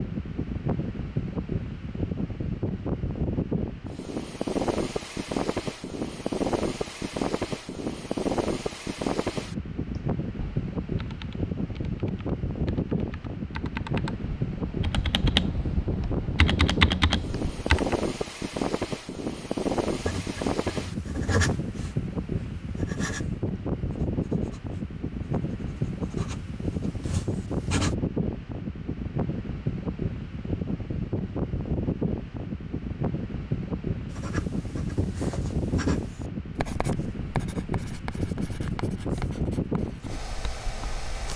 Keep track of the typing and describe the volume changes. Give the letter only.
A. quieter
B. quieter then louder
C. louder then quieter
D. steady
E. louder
E.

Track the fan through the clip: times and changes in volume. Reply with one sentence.
The fan can be heard from 0.0 to 41.3 s, at a steady volume.